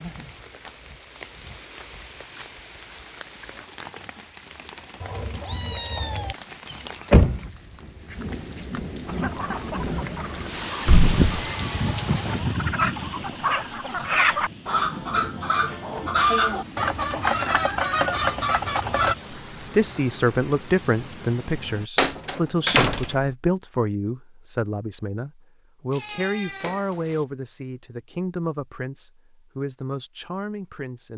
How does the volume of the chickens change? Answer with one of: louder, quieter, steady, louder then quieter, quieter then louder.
louder.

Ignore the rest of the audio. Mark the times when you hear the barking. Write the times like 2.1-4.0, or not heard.
not heard.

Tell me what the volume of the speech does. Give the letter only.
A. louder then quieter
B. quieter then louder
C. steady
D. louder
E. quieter
E.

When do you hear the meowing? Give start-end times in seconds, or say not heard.
5.0-6.3, 11.0-12.8, 25.9-27.2.